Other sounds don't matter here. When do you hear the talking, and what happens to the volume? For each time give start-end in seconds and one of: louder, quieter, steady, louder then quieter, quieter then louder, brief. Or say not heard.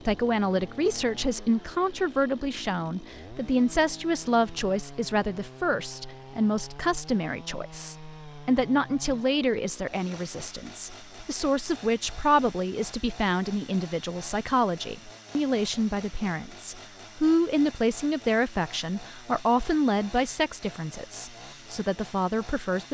0.1-22.8 steady.